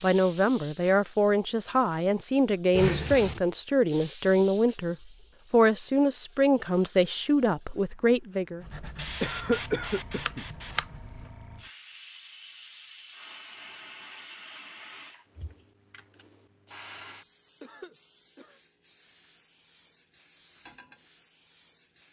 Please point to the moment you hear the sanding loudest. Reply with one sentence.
The loudest moment of the sanding is at 11 seconds.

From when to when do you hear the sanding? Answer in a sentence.
The sanding can be heard from 8.6 to 11.3 s.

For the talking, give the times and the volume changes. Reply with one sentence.
The talking can be heard from 0.0 to 8.7 s, at a steady volume.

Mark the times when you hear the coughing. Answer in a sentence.
The coughing can be heard from 2.8 to 3.4 s, from 9.2 to 10.4 s and from 17.6 to 18.6 s.